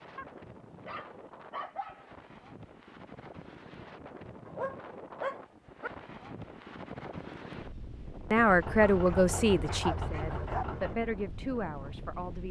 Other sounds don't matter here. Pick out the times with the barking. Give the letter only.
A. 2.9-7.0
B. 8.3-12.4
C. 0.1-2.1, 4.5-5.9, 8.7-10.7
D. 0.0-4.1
C.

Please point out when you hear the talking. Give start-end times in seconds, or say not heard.
8.3-12.4.